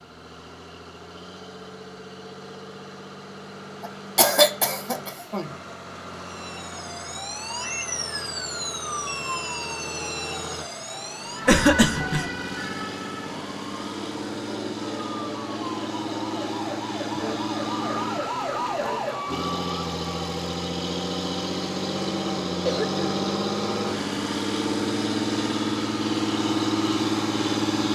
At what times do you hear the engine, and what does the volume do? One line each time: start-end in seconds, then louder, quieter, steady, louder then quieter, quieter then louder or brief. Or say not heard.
0.0-27.8 louder.